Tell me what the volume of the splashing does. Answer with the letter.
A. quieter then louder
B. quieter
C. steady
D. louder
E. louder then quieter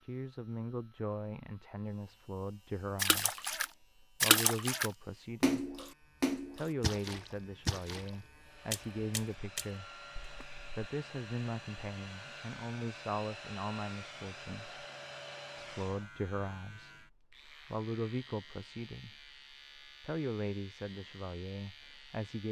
B.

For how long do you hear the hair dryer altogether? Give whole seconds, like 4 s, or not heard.
8 s.